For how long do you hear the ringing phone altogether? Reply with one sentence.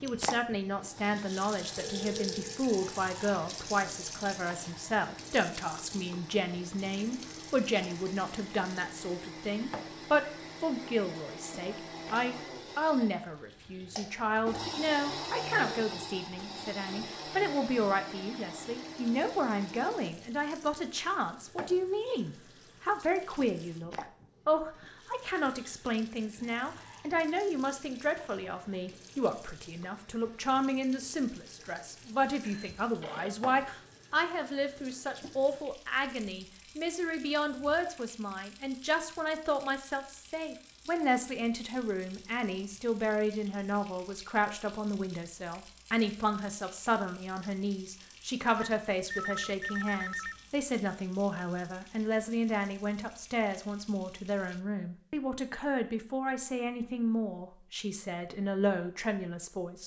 The ringing phone can be heard for 4 seconds in total.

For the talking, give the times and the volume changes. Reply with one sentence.
You can hear the talking from 0.0 to 59.8 s, at a steady volume.